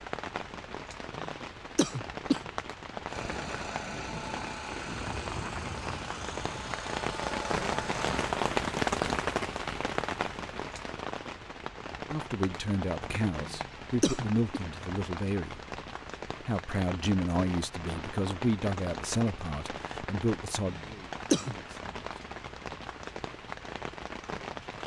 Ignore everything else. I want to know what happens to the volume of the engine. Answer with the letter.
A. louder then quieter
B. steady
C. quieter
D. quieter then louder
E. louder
B.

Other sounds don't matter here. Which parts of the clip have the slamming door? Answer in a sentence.
The slamming door can't be heard in this clip.